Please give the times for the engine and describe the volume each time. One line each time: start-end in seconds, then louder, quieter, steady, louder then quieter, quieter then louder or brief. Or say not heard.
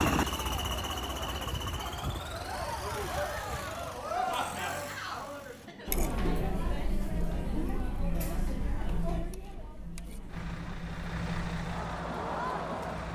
0.0-5.7 quieter
10.2-13.1 brief.